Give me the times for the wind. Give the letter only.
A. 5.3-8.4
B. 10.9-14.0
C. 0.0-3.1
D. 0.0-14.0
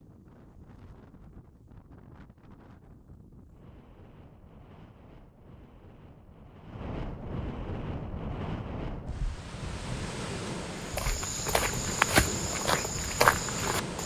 D.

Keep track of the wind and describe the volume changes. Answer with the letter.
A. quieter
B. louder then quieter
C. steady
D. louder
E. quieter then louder
D.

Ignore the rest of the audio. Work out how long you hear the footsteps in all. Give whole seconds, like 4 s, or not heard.
3 s.